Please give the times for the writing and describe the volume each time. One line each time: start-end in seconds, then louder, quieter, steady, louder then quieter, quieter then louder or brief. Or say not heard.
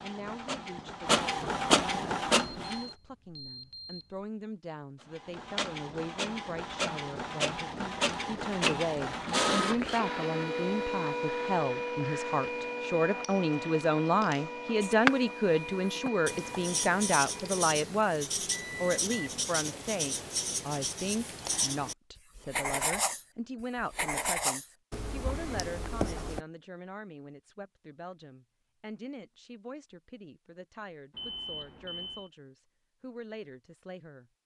14.8-26.4 steady.